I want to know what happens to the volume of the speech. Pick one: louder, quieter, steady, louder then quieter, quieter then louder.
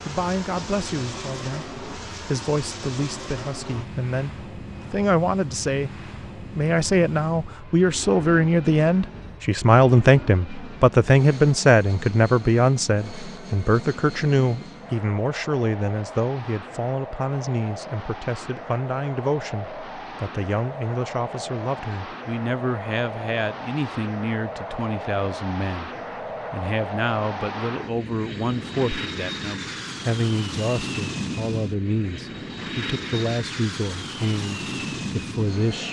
louder then quieter.